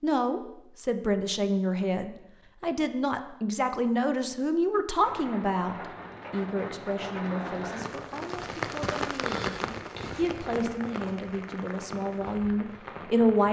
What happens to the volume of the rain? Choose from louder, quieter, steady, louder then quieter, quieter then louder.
louder then quieter.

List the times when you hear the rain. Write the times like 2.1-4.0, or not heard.
5.0-13.4.